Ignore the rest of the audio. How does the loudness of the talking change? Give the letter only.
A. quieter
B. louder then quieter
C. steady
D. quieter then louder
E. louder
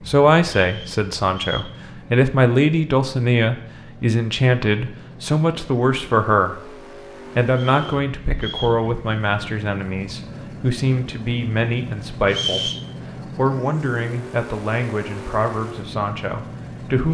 A.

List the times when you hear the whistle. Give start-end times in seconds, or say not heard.
0.5-1.8, 7.5-8.8, 12.2-12.8.